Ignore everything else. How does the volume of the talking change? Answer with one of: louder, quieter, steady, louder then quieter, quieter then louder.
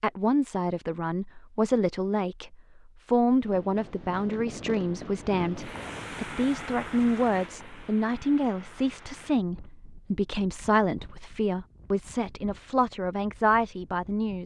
steady.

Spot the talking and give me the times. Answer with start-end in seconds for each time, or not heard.
0.0-14.4.